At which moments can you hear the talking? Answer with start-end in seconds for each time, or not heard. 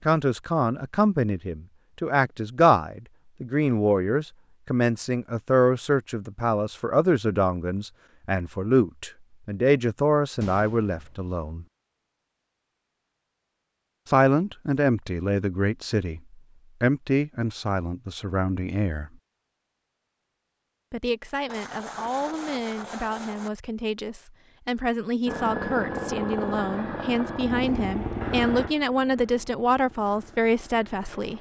0.1-11.7, 14.1-19.2, 20.9-31.3.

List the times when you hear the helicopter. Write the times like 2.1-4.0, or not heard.
25.2-31.3.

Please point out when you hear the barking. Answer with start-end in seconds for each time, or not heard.
not heard.